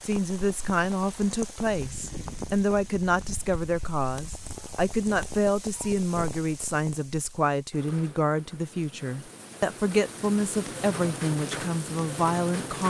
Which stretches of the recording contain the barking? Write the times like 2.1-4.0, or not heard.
not heard.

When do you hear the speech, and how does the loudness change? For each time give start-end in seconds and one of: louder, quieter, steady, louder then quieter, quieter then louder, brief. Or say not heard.
0.0-12.8 steady.